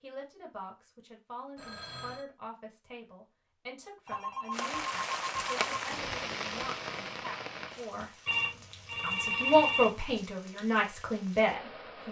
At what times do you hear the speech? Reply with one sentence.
You can hear the speech from 0.0 to 8.1 s and from 9.0 to 12.0 s.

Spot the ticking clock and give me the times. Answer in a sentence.
You can't hear the ticking clock here.